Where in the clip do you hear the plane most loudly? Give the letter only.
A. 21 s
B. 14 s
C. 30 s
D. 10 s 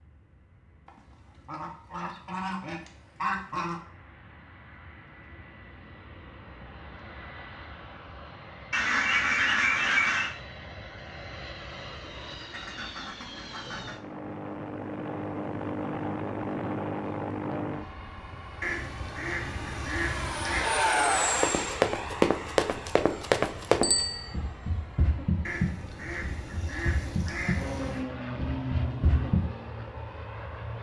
A.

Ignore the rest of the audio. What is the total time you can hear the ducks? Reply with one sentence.
The ducks can be heard for 11 seconds in total.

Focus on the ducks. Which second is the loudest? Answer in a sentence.
The loudest moment of the ducks is at 10 seconds.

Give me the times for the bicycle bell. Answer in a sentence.
The bicycle bell can be heard from 23.8 to 24.4 s.